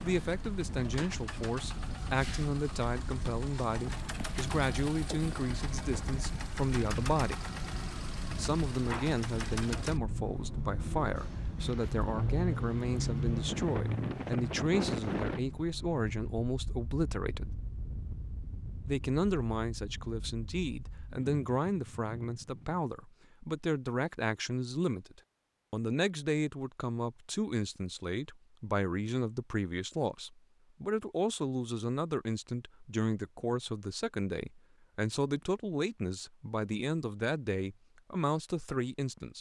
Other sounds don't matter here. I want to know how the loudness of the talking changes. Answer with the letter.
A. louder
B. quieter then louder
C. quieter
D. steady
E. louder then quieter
D.